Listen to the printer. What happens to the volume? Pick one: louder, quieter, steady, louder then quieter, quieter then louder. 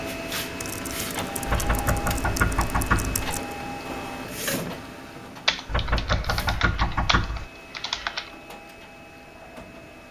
quieter.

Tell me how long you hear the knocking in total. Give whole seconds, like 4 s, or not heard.
4 s.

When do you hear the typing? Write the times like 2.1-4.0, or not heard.
0.6-3.5, 5.5-8.3.